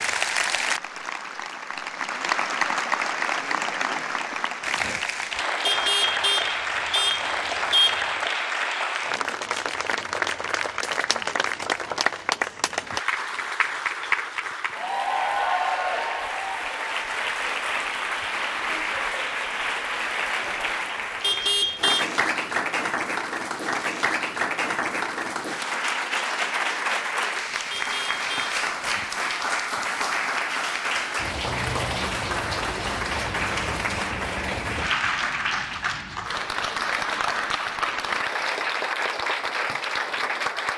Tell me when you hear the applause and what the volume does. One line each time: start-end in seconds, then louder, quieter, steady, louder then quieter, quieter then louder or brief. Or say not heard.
0.0-40.7 steady.